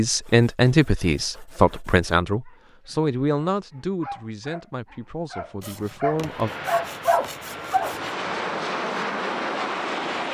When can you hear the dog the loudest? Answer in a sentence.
The volume of the dog peaks at 7 seconds.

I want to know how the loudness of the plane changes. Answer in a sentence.
The volume of the plane goes up.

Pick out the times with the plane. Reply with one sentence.
The plane can be heard from 6.1 to 10.2 s.